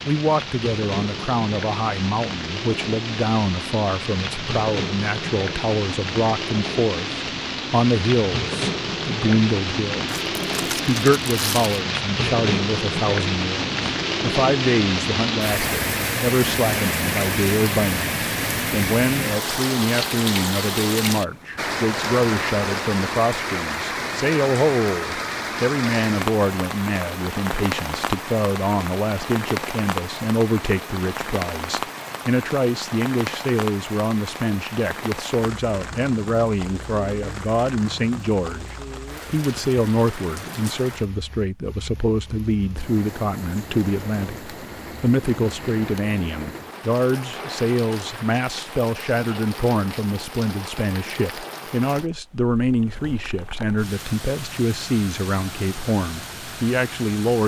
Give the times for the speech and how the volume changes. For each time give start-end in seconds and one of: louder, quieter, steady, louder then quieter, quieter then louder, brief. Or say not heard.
0.1-57.4 steady.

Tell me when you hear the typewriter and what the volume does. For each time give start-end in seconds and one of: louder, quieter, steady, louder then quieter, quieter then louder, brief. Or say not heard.
not heard.